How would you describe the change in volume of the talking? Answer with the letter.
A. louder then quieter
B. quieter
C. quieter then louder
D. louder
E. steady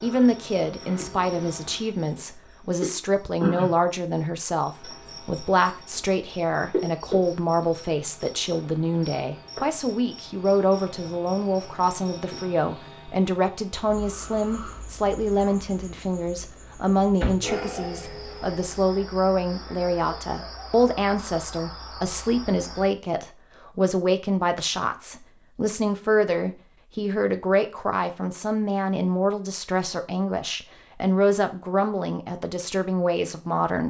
E.